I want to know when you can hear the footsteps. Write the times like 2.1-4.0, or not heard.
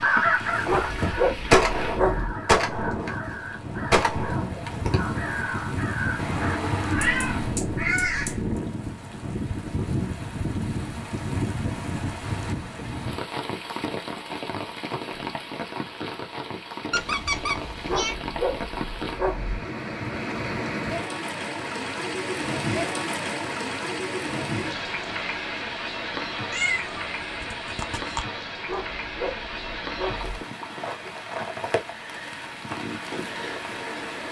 not heard.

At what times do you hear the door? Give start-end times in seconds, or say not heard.
not heard.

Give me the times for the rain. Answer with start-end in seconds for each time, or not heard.
0.0-34.2.